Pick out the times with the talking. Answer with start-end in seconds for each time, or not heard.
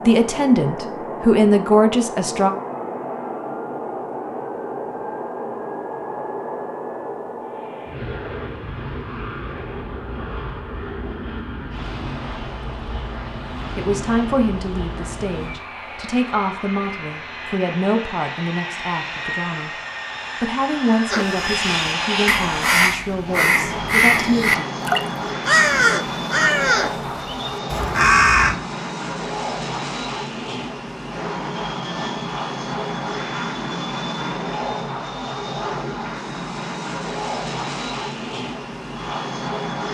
0.0-2.5, 13.8-19.7, 20.4-24.6.